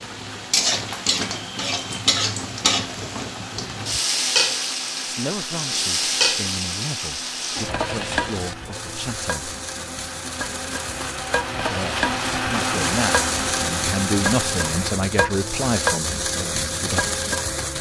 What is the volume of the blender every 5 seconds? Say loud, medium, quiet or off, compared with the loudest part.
medium, medium, loud, off.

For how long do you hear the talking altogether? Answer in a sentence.
You can hear the talking for 10 seconds altogether.